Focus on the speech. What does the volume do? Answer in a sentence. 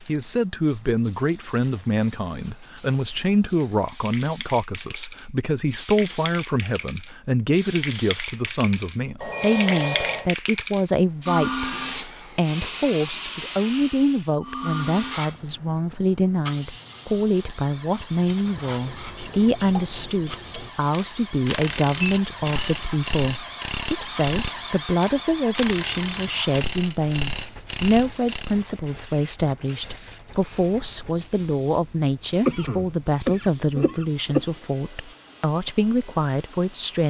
The loudness of the speech stays about the same.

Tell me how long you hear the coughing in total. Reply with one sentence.
The coughing can be heard for 2 seconds in total.